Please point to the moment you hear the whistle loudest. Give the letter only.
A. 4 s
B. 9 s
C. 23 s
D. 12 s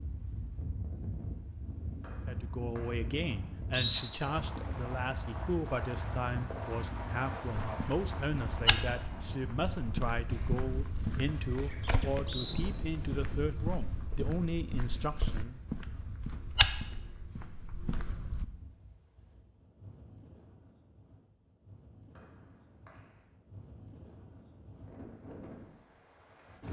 A.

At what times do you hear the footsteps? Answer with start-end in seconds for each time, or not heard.
7.5-18.4.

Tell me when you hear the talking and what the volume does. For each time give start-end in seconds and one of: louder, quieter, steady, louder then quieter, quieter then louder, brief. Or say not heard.
2.2-15.6 steady.